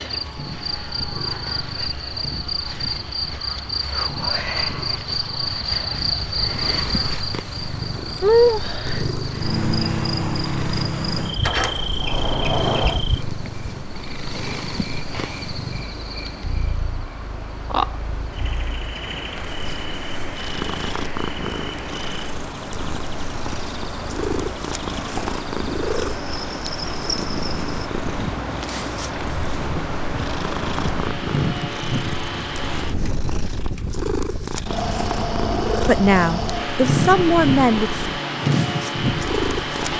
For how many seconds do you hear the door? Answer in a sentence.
You can hear the door for 2 seconds altogether.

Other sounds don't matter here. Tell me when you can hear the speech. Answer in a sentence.
The speech can be heard from 35.9 to 38.0 s.